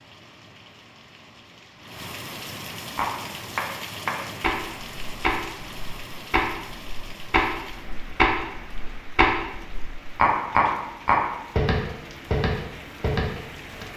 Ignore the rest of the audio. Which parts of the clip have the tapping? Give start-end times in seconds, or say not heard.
3.0-13.8.